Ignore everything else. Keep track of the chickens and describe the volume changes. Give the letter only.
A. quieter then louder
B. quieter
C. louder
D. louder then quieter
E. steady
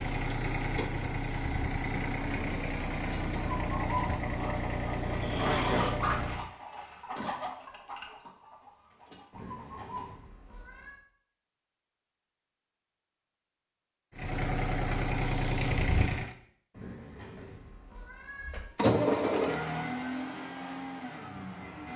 D.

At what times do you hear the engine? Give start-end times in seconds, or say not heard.
0.0-6.5, 14.2-16.4, 18.8-21.9.